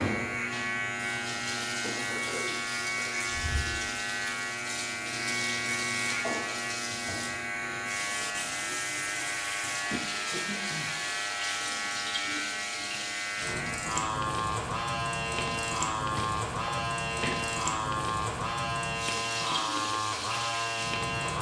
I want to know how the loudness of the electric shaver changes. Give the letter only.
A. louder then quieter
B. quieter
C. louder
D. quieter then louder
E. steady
E.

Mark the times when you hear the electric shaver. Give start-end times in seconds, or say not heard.
0.0-21.3.